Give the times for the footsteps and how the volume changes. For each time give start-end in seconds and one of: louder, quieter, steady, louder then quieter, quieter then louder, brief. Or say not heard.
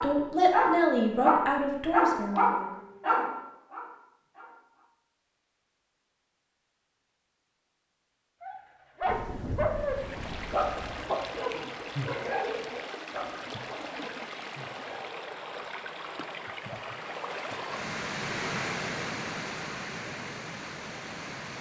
not heard.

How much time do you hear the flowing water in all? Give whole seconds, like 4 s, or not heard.
12 s.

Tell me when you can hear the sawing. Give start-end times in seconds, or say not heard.
not heard.